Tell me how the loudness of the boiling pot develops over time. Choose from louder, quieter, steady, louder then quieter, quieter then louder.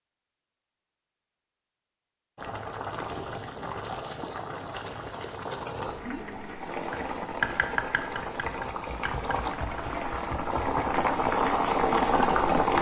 louder.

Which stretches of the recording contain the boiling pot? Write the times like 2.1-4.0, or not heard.
2.4-12.7.